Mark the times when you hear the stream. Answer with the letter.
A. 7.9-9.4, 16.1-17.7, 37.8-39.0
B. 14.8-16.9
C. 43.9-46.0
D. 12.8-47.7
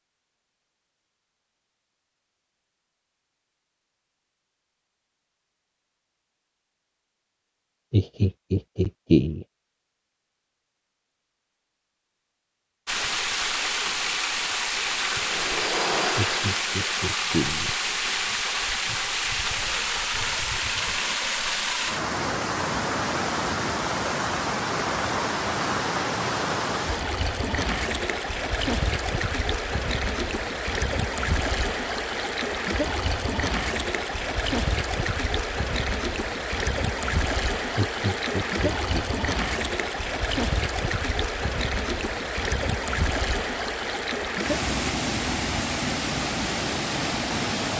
D.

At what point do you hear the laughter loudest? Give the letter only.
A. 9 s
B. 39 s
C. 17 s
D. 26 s
A.